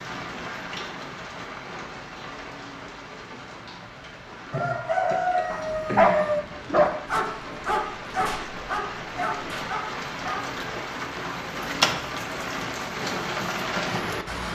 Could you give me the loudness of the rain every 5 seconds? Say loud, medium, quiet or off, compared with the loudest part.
medium, medium, loud.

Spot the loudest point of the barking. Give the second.
6 s.